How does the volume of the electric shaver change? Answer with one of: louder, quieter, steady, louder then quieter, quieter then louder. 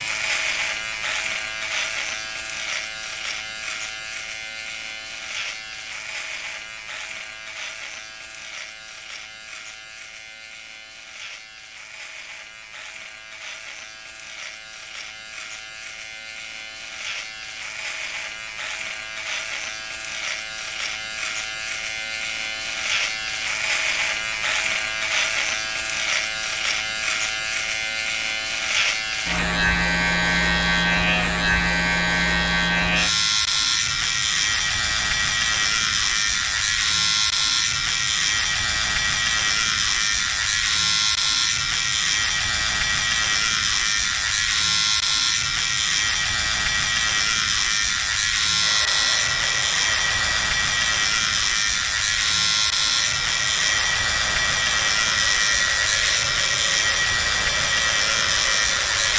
louder.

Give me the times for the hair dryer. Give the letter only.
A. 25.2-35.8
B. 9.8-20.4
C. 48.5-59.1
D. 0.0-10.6
C.